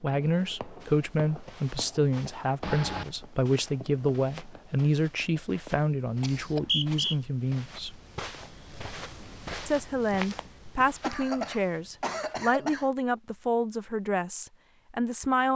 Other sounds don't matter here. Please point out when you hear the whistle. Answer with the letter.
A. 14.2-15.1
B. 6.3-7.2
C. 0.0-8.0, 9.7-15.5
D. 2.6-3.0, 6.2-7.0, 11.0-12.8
B.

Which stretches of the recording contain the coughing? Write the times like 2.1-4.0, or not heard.
2.6-3.0, 6.2-7.0, 11.0-12.8.